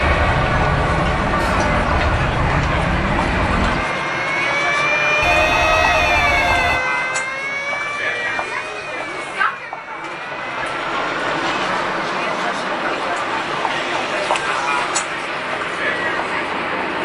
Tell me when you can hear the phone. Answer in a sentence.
The phone can be heard from 5.2 to 6.8 s.